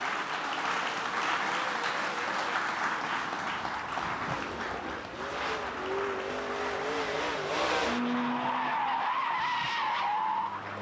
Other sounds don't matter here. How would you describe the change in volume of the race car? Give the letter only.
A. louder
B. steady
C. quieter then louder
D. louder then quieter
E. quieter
A.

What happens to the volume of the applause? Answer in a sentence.
The loudness of the applause goes down.